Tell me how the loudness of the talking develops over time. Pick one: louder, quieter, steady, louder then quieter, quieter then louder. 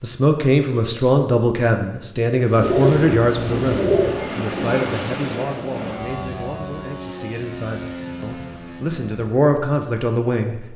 quieter then louder.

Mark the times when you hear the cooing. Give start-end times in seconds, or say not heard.
2.5-4.2.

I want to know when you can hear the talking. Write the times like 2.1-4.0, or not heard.
0.0-10.7.